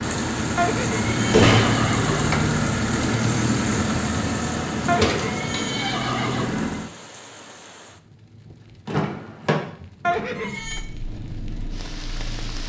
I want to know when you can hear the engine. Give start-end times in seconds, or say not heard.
0.0-6.9, 10.6-12.6.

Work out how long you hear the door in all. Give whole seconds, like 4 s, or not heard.
2 s.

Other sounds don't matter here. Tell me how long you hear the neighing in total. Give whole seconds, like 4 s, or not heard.
4 s.